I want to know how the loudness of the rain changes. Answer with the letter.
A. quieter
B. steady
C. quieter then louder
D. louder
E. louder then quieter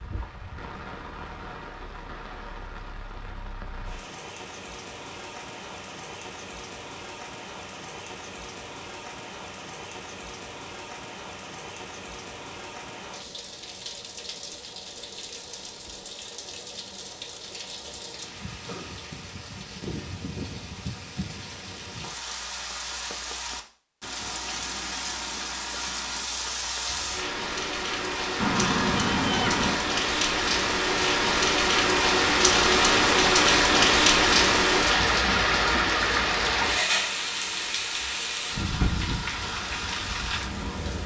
D.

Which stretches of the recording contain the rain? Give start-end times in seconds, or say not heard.
0.0-41.0.